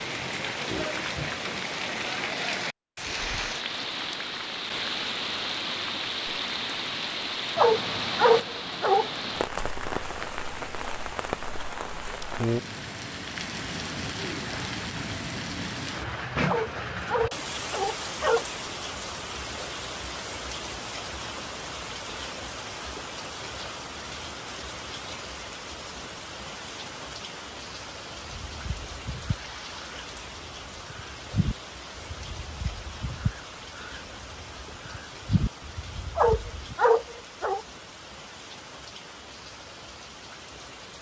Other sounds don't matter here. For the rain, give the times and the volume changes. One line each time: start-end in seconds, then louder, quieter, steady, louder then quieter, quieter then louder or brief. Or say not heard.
0.0-40.9 quieter.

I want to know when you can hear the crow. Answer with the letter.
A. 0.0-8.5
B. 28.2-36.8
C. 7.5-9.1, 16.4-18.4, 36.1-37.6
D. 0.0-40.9
B.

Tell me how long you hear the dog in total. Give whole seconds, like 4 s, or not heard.
5 s.